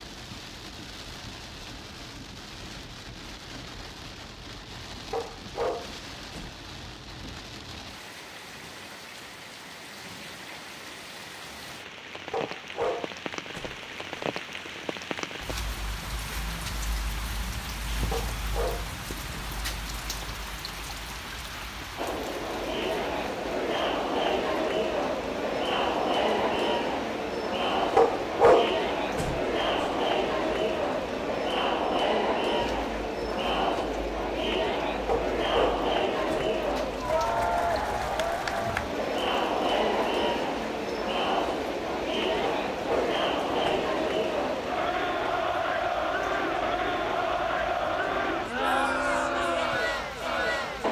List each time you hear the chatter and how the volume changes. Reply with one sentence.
You can hear the chatter from 21.9 to 50.8 s, at a steady volume.